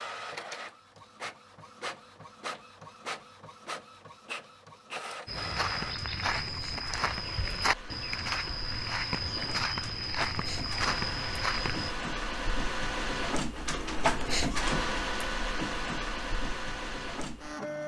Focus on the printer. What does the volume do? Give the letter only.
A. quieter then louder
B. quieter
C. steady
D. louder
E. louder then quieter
D.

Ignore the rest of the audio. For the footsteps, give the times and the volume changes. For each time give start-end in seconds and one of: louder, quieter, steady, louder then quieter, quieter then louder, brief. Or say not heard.
5.2-11.9 steady.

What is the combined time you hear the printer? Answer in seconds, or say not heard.
18 s.